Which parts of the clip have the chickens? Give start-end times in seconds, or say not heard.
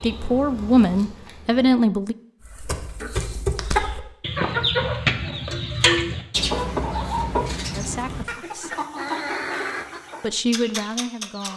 2.5-11.5.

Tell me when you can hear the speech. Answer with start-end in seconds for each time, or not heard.
0.0-2.1, 7.8-8.8, 10.2-11.5.